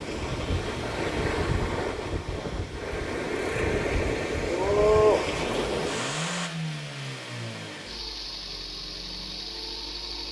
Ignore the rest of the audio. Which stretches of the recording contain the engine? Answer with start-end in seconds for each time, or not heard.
0.0-10.2.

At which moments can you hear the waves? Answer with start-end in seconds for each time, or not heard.
0.0-6.5.